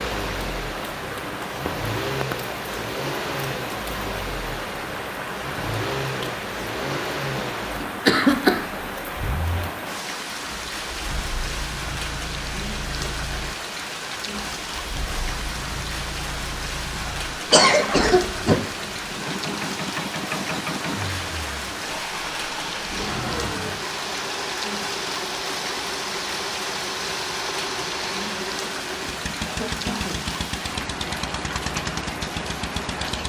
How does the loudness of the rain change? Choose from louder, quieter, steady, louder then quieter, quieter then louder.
steady.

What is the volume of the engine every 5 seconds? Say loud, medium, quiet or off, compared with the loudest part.
loud, loud, medium, loud, loud, loud, loud.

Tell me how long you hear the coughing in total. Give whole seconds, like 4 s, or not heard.
4 s.